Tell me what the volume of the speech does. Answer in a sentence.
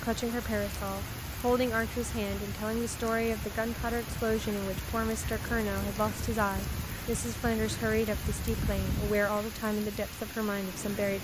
The volume of the speech stays about the same.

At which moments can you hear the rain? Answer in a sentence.
You can hear the rain from 0.0 to 11.1 s.